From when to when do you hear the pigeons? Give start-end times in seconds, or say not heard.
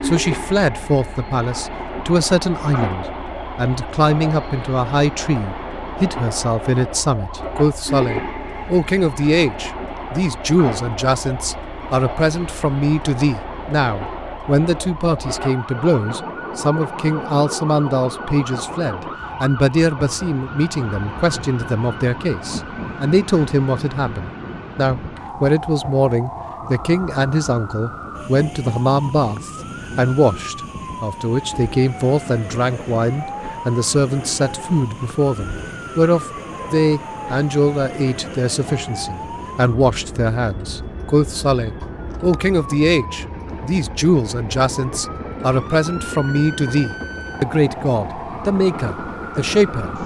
not heard.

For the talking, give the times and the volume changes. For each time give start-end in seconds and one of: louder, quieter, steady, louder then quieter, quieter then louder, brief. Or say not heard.
0.0-50.0 steady.